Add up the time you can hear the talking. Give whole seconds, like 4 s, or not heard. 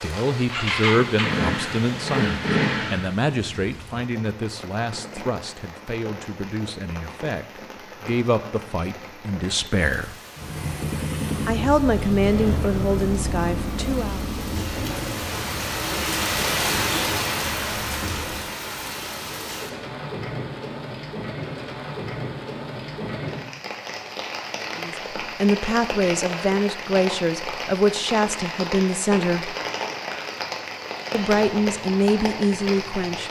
20 s.